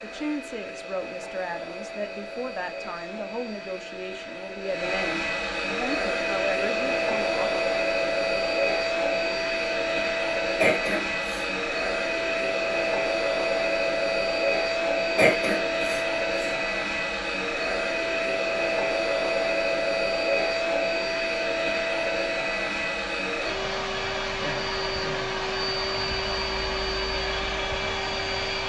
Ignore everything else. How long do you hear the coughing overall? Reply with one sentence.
You can hear the coughing for 2 seconds altogether.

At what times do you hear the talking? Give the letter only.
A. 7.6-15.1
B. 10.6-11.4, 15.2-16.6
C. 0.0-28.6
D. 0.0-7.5
D.